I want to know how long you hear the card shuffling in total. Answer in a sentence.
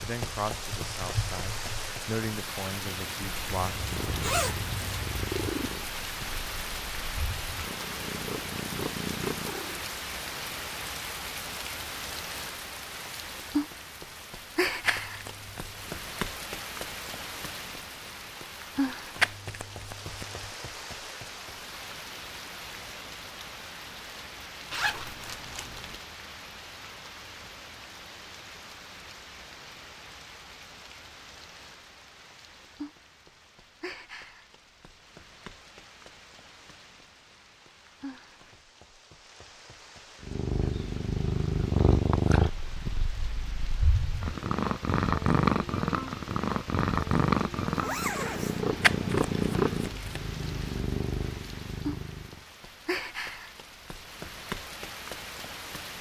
The card shuffling can be heard for 4 seconds in total.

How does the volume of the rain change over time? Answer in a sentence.
The volume of the rain goes down, then up.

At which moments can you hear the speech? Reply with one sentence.
The speech can be heard from 0.0 to 3.9 s.